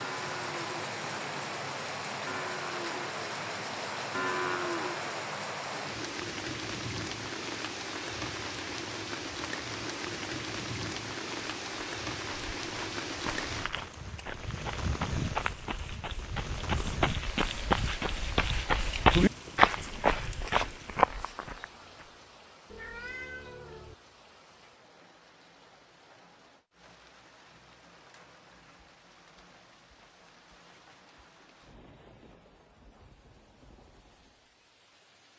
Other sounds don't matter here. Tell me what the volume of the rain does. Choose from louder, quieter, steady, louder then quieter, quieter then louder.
quieter.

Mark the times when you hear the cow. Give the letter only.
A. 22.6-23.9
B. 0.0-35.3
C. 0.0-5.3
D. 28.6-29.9
C.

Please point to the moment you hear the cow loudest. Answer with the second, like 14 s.
4 s.